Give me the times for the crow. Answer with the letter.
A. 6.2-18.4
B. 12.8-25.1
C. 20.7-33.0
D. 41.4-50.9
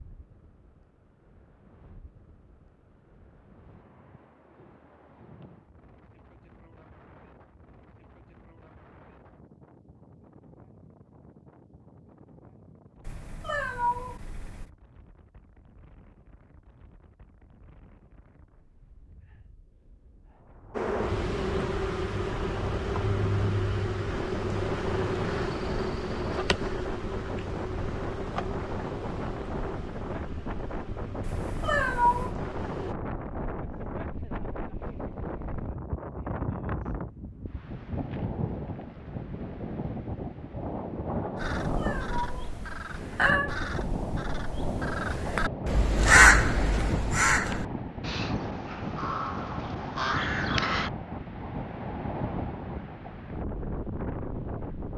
D.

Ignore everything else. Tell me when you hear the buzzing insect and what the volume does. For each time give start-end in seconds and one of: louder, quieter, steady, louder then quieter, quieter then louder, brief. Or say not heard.
20.7-33.0 quieter.